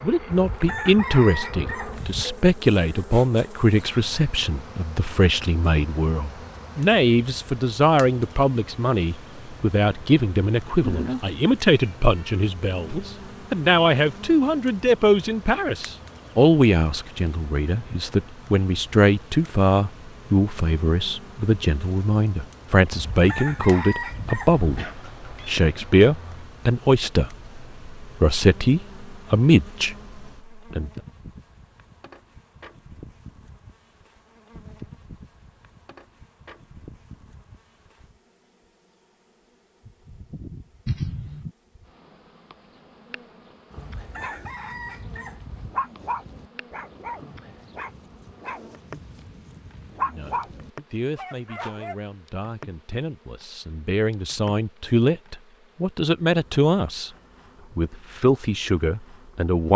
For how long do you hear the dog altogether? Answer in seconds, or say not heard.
8 s.